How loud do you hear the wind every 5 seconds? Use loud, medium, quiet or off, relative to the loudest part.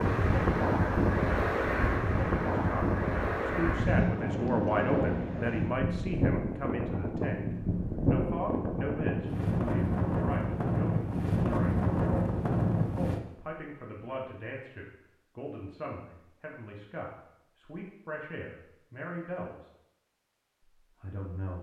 loud, loud, loud, off, off.